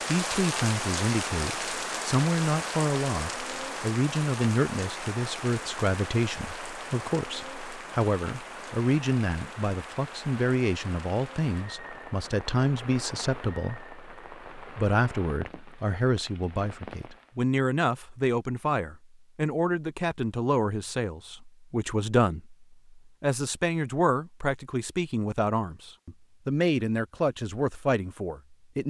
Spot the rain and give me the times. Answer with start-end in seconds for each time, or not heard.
0.0-17.4.